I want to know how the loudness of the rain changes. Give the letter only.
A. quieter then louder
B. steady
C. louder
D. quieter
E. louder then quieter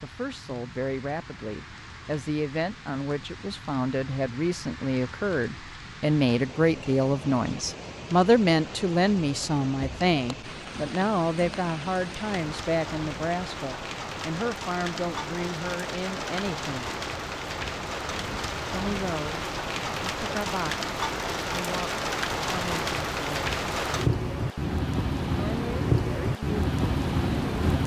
C.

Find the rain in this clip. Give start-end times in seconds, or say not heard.
0.0-27.8.